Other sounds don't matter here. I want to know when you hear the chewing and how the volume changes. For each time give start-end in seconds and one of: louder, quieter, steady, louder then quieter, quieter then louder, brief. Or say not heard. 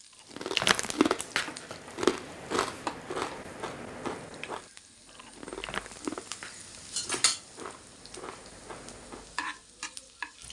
0.3-9.3 quieter.